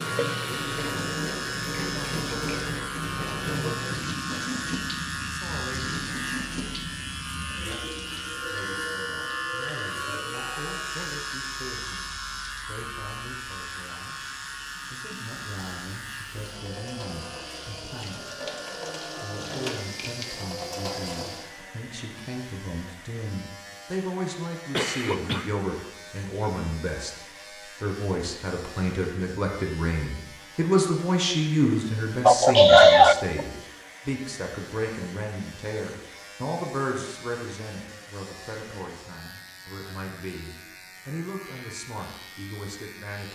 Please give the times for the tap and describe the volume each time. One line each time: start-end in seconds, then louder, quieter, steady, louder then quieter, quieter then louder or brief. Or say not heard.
0.0-21.5 quieter then louder.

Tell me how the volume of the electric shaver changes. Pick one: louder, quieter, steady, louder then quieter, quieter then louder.
quieter.